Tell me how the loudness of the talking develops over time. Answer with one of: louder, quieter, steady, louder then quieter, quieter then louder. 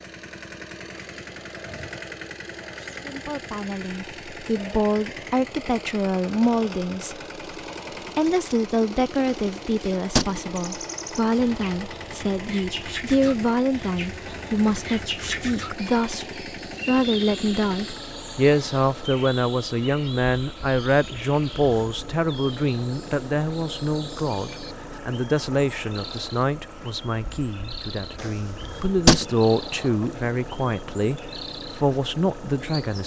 steady.